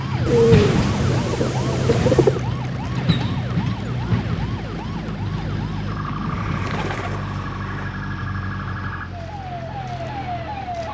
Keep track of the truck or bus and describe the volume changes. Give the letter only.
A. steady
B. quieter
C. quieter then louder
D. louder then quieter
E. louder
B.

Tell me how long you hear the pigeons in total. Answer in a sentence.
The pigeons can be heard for 4 seconds in total.